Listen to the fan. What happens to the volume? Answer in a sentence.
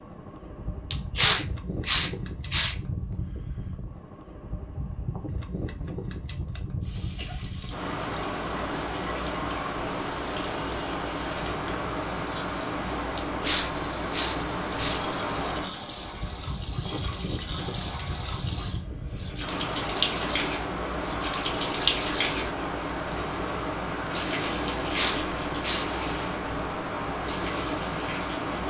The loudness of the fan goes up.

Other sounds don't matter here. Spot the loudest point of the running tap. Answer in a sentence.
The volume of the running tap peaks at 22 seconds.